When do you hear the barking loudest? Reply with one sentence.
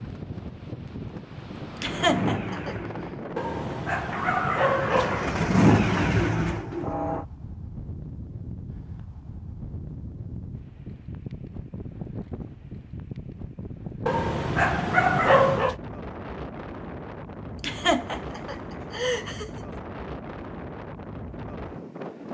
The volume of the barking peaks at 15 seconds.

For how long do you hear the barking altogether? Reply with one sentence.
The barking can be heard for 4 seconds in total.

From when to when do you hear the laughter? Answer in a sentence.
You can hear the laughter from 1.8 to 2.8 s and from 17.6 to 19.5 s.